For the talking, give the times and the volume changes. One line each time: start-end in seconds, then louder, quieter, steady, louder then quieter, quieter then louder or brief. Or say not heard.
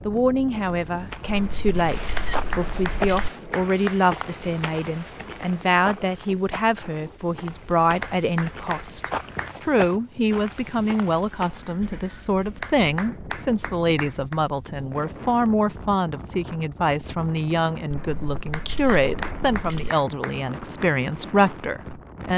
0.1-22.3 steady.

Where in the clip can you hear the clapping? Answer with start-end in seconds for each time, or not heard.
2.1-4.0, 8.0-9.6, 12.6-14.4, 18.5-20.4.